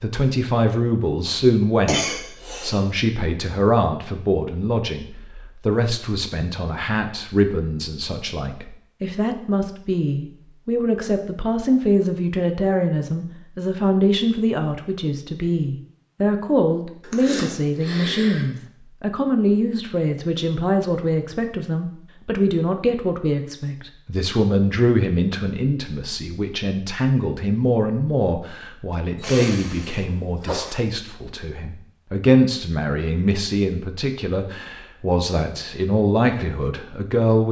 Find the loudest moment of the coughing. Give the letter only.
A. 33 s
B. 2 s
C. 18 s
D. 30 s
B.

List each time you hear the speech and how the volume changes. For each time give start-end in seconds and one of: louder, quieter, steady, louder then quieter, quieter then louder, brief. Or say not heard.
0.0-37.4 steady.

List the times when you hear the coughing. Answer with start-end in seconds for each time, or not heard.
1.9-2.8, 17.0-18.4, 29.4-30.7.